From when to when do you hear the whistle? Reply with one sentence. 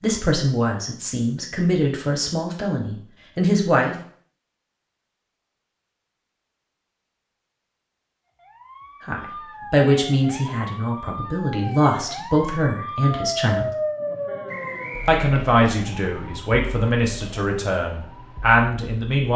The whistle can be heard from 14.4 to 15.2 s.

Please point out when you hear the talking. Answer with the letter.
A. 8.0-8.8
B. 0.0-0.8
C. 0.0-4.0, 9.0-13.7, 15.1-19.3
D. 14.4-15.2
C.